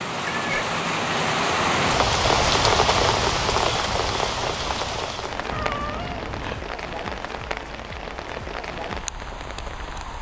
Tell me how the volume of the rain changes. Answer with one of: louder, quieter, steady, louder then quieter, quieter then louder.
quieter.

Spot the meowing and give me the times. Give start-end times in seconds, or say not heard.
0.2-0.7, 5.5-6.7.